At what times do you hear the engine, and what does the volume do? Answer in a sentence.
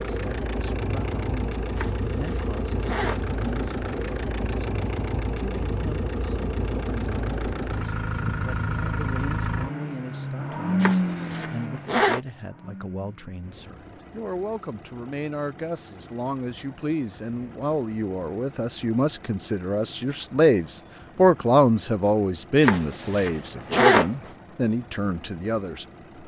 You can hear the engine from 0.0 to 26.2 s, getting quieter.